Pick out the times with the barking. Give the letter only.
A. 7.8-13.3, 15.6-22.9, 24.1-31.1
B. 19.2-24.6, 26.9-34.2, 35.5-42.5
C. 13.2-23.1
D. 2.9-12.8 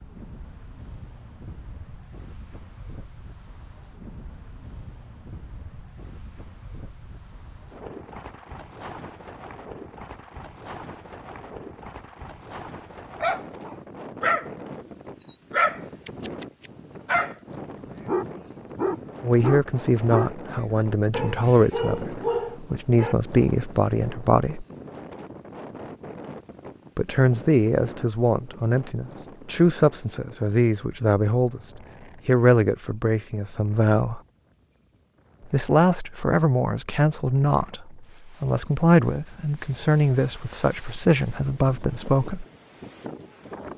C.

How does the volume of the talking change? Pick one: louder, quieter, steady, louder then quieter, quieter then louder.
steady.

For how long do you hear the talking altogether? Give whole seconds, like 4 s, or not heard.
20 s.